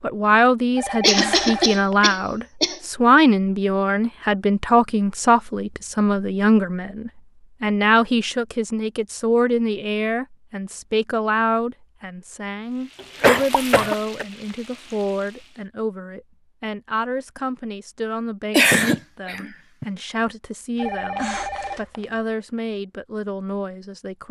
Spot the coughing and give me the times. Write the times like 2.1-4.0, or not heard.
1.0-2.8, 13.0-14.2, 18.5-19.9.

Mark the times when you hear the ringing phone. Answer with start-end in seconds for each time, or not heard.
0.8-2.0, 20.8-22.1.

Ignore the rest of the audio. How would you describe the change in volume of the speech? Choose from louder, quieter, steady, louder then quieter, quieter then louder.
quieter.